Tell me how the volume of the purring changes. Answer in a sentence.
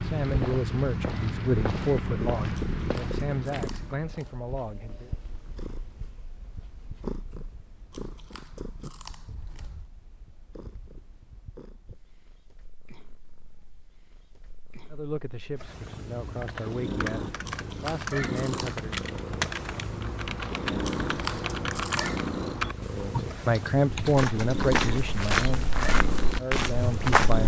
The loudness of the purring goes down, then up.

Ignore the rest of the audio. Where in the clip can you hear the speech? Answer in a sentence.
The speech can be heard from 0.0 to 5.1 s, from 14.9 to 19.1 s and from 22.8 to 27.4 s.